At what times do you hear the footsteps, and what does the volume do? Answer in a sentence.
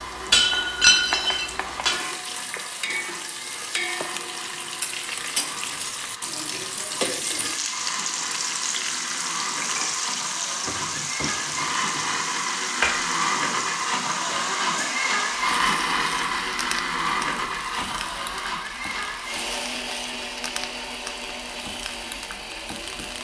You can't hear the footsteps here.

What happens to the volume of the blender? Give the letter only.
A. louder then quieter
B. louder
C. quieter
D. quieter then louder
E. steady
A.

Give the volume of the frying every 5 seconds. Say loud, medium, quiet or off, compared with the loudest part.
loud, loud, loud, medium, medium.